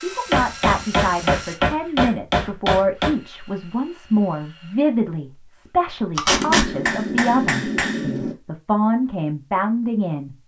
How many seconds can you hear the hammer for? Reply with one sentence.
You can hear the hammer for 5 seconds altogether.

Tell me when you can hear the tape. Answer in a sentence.
The tape can be heard from 6.2 to 6.7 s.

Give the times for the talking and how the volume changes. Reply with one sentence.
You can hear the talking from 0.0 to 10.3 s, at a steady volume.